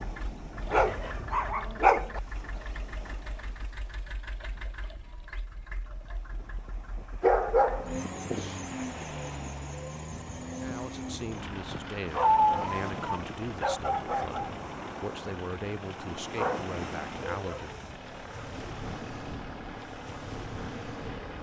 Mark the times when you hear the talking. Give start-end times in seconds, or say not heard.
10.6-17.8.